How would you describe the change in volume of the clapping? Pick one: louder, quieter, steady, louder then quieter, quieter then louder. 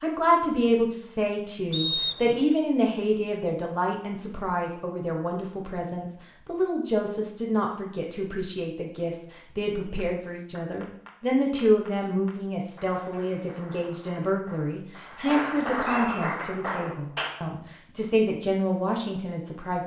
louder.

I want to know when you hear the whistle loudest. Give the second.
2 s.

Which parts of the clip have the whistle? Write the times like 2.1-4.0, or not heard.
1.7-2.4, 15.2-16.2.